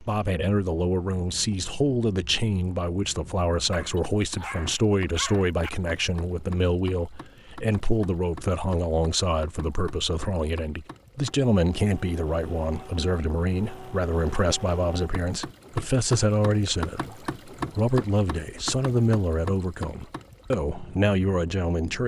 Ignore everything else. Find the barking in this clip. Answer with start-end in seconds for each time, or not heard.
3.7-5.7.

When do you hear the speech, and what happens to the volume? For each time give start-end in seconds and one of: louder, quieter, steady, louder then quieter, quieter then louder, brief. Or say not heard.
0.0-22.0 steady.